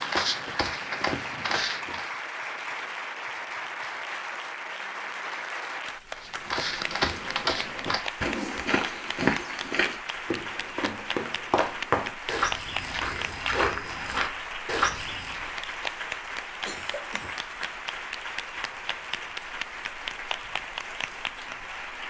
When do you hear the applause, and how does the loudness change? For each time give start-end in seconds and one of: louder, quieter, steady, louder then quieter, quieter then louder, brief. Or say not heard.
0.0-22.0 steady.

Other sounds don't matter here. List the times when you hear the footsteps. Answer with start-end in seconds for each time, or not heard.
0.0-2.1, 6.2-15.5.